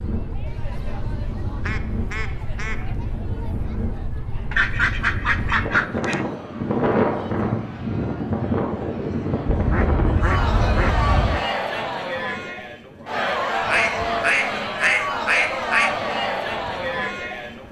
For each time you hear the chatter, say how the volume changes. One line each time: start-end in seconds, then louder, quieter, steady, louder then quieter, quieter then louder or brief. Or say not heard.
0.0-17.6 louder.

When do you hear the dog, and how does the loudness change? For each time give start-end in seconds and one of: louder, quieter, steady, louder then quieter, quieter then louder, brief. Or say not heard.
not heard.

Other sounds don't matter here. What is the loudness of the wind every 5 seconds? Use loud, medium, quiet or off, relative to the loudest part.
medium, loud, quiet, quiet.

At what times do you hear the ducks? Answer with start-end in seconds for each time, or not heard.
0.5-2.8, 4.5-6.2, 9.4-11.4, 13.6-15.9.